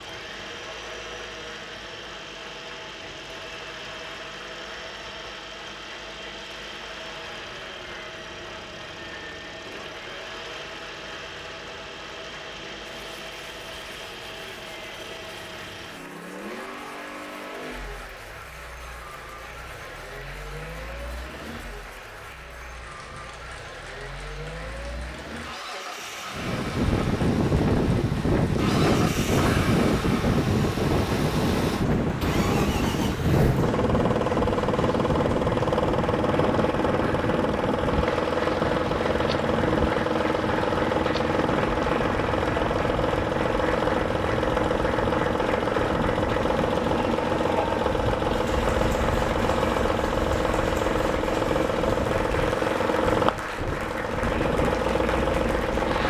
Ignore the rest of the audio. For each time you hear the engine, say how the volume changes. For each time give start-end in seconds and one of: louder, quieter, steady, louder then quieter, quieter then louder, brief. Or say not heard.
0.0-56.0 louder.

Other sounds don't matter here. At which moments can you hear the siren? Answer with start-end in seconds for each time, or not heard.
not heard.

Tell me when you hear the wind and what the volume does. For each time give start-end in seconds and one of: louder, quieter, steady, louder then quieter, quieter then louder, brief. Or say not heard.
26.3-56.0 quieter.